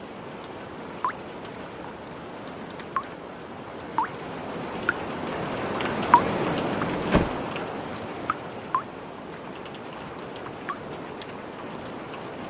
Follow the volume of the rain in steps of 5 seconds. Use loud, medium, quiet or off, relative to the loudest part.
medium, loud, medium.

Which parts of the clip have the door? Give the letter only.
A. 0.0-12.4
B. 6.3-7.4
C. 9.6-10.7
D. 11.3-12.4
B.